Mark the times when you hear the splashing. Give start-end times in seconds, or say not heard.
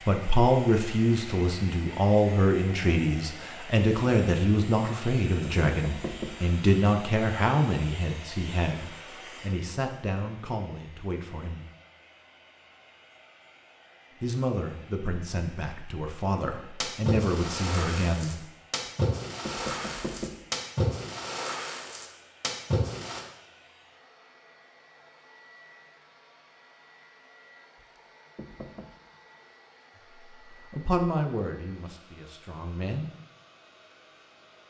16.8-23.2.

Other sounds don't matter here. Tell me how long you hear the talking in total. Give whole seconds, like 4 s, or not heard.
18 s.